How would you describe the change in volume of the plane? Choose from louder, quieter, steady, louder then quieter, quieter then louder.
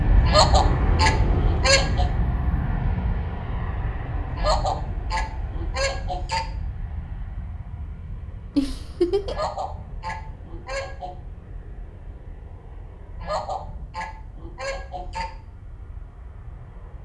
quieter.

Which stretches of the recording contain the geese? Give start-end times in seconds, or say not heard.
0.1-2.1, 4.2-6.5, 9.2-11.2, 13.1-15.2.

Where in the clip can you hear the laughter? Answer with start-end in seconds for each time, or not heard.
8.6-9.5.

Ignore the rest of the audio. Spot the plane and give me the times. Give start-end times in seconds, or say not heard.
0.0-17.0.